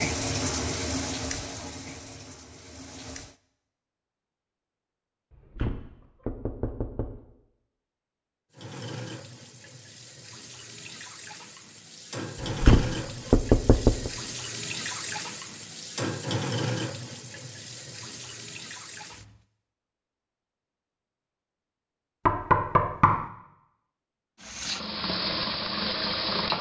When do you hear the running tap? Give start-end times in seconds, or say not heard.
0.0-3.4, 8.5-19.4, 24.4-26.5.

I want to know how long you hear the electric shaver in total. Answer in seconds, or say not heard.
not heard.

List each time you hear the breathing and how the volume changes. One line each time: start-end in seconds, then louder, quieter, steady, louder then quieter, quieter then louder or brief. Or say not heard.
not heard.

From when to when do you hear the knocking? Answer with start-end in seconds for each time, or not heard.
5.3-7.2, 12.4-14.1, 22.2-23.3.